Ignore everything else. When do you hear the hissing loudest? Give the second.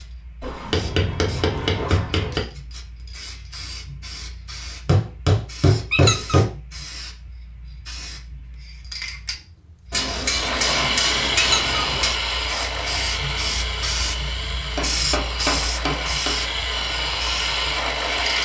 15 s.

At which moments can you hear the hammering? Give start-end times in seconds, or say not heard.
0.4-2.4, 4.8-6.5, 9.9-12.2, 14.8-16.4.